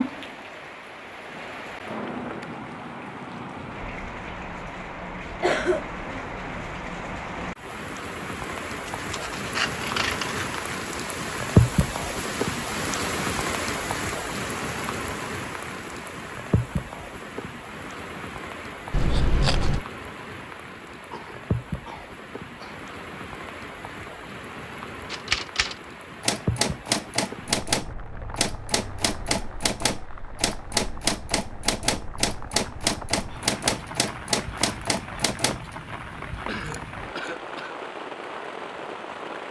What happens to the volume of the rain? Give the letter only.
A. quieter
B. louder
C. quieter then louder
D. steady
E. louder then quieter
E.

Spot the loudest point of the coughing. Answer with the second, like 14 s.
6 s.